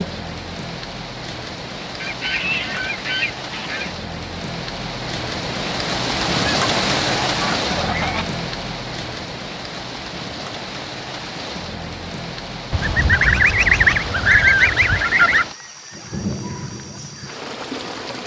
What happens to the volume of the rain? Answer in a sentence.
The volume of the rain goes up, then down.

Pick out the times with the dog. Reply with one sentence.
You can't hear the dog here.